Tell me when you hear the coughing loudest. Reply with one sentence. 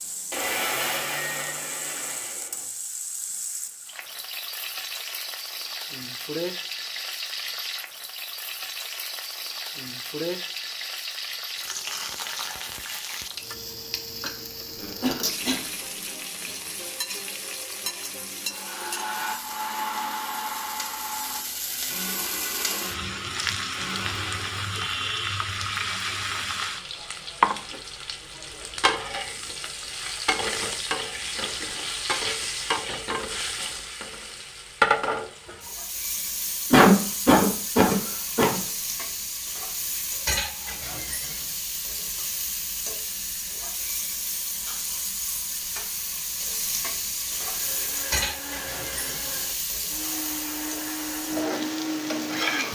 The volume of the coughing peaks at 37 seconds.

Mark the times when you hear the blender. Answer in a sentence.
The blender can be heard from 0.3 to 2.6 s, from 18.4 to 24.8 s and from 47.4 to 52.6 s.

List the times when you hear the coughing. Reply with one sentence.
The coughing can be heard from 14.8 to 16.1 s and from 36.7 to 38.6 s.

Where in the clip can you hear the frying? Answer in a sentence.
You can hear the frying from 0.0 to 52.6 s.